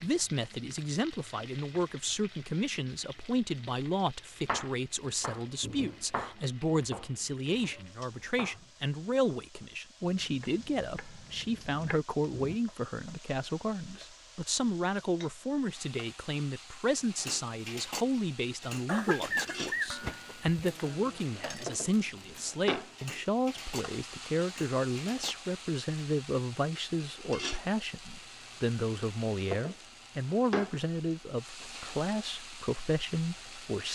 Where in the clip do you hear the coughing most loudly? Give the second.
19 s.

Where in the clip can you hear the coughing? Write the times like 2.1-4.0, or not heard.
18.9-20.6.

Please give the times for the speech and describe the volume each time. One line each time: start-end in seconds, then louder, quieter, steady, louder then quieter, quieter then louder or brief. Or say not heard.
0.0-33.9 steady.